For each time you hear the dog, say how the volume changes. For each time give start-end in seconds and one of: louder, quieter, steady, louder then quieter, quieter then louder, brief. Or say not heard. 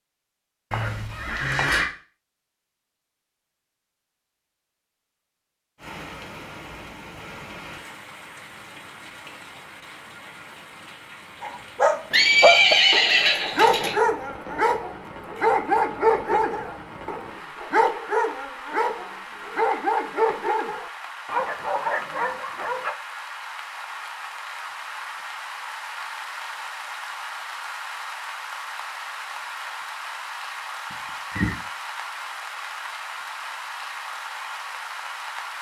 11.4-22.9 quieter.